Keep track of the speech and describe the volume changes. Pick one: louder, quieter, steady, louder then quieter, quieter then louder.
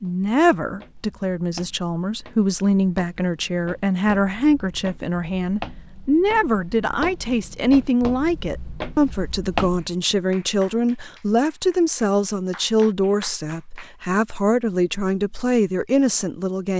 steady.